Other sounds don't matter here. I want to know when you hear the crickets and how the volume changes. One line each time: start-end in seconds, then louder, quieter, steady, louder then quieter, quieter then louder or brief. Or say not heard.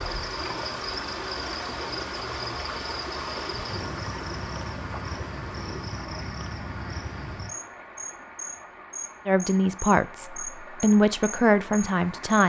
0.0-12.4 steady.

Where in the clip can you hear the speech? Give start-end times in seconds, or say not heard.
9.2-12.4.